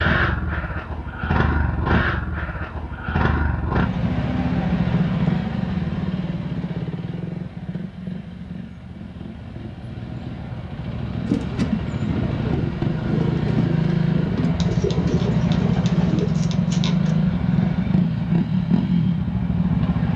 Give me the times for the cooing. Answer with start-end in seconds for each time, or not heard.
11.2-17.1.